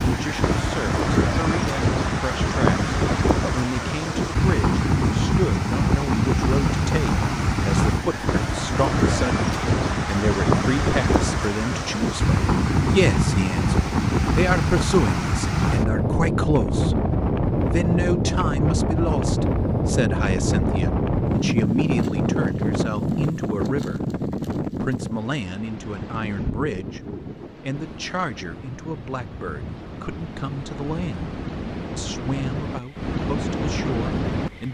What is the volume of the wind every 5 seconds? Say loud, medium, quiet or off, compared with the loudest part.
loud, loud, loud, loud, loud, quiet, medium.